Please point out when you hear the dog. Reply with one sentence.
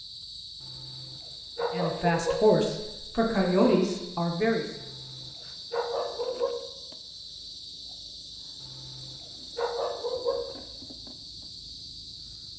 The dog can be heard from 0.6 to 2.5 s, from 4.8 to 6.5 s and from 8.6 to 10.6 s.